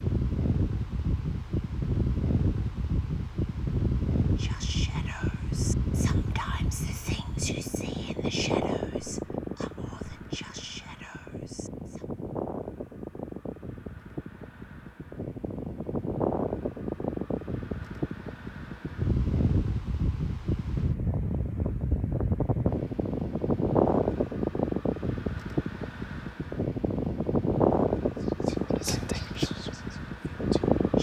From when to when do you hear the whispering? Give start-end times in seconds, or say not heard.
4.2-12.1, 28.1-30.9.